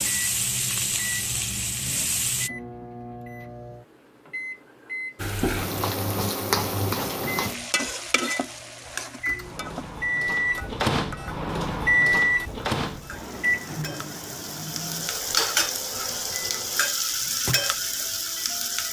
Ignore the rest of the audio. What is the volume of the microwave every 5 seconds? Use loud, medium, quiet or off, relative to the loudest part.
quiet, medium, loud, quiet.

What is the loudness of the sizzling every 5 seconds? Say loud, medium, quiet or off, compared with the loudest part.
loud, loud, quiet, loud.